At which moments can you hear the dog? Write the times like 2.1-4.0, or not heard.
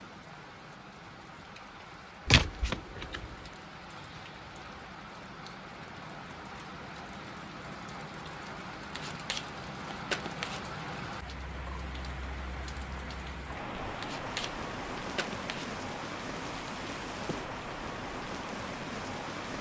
not heard.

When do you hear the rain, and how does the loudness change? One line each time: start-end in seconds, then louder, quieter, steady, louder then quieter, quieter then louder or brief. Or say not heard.
0.0-19.5 louder.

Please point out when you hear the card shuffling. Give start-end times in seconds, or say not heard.
2.2-3.4, 8.9-10.7, 14.0-15.7.